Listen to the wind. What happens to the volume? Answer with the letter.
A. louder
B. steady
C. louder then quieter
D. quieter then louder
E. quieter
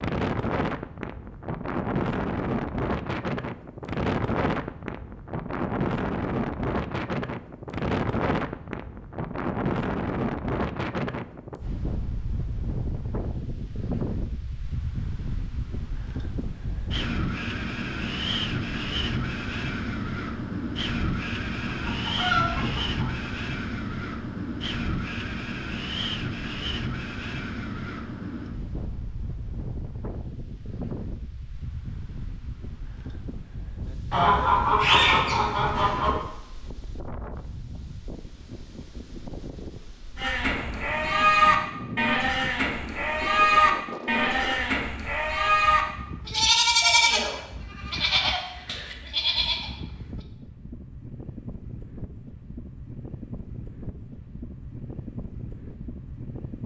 E.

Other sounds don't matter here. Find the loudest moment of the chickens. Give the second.
35 s.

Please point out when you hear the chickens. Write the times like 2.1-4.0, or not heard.
21.7-23.3, 34.1-36.1.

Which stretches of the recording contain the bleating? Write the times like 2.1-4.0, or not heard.
40.1-49.7.